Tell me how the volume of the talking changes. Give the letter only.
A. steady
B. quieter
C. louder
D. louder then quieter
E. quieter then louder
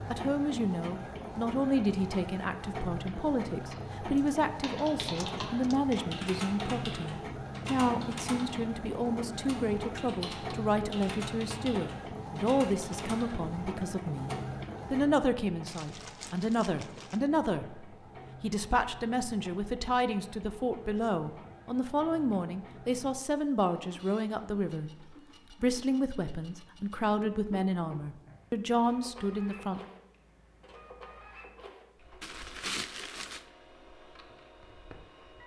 A.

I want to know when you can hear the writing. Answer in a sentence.
You can't hear the writing here.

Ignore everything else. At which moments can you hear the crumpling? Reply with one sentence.
The crumpling can be heard from 5.2 to 5.8 s, from 15.7 to 17.2 s and from 32.2 to 33.5 s.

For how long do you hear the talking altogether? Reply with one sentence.
You can hear the talking for 30 seconds altogether.